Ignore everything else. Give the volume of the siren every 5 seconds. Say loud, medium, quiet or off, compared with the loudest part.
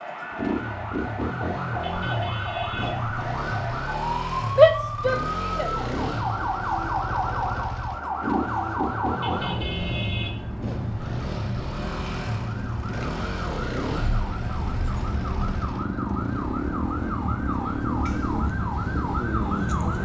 loud, loud, medium, loud.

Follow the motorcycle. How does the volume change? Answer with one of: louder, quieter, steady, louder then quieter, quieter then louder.
steady.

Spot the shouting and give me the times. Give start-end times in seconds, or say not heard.
4.5-5.7.